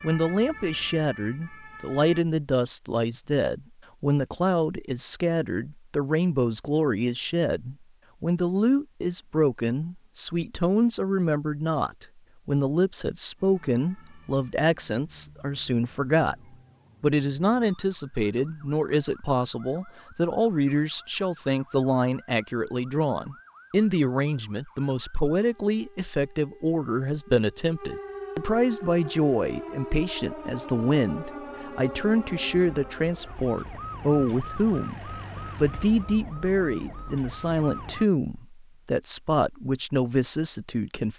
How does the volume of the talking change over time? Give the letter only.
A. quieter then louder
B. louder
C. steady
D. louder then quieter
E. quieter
C.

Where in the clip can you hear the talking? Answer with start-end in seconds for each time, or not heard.
0.0-16.4, 17.0-41.1.